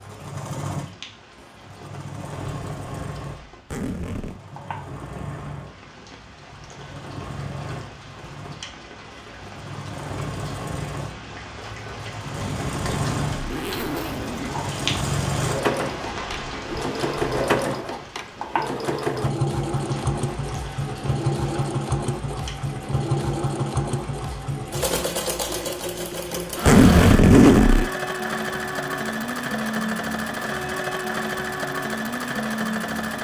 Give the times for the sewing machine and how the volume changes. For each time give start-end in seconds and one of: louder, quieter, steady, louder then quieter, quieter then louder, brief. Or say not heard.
0.0-33.2 louder.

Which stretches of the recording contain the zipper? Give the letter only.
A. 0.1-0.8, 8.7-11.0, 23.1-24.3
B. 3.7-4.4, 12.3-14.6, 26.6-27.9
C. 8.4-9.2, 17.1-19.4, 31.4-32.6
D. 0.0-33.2
B.